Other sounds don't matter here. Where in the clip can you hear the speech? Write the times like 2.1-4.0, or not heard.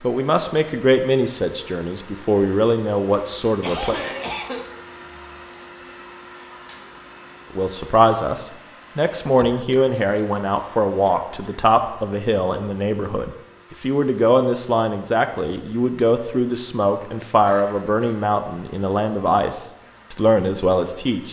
0.0-4.0, 7.5-21.2.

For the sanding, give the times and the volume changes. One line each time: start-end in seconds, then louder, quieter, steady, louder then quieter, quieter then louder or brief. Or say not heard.
not heard.